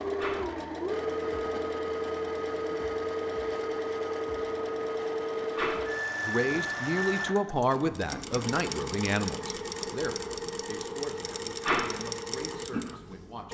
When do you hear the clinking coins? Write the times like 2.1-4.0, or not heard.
not heard.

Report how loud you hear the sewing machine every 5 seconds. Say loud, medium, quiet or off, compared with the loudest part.
loud, loud, medium.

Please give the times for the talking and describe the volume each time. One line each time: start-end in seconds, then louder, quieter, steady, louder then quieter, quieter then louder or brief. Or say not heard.
6.2-13.4 quieter.